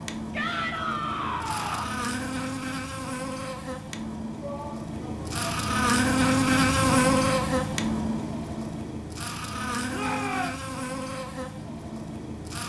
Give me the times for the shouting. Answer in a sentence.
You can hear the shouting from 0.3 to 1.9 s, from 4.4 to 5.6 s and from 9.9 to 10.6 s.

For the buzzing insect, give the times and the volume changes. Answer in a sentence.
You can hear the buzzing insect from 0.0 to 12.6 s, getting louder then quieter.